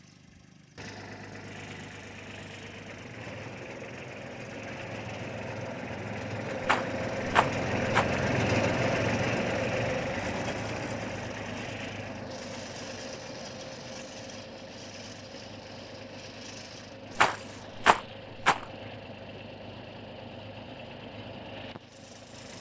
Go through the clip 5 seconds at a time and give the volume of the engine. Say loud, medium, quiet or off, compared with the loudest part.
quiet, loud, medium, quiet, quiet.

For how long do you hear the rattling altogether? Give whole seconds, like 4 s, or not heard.
3 s.